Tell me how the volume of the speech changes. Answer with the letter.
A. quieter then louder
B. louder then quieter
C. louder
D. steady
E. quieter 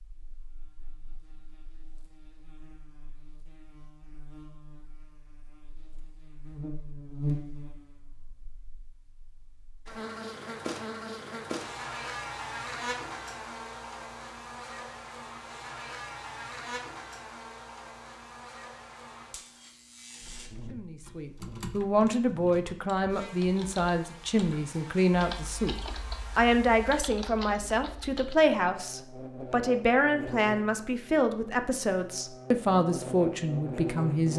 D.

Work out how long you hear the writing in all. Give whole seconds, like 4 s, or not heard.
not heard.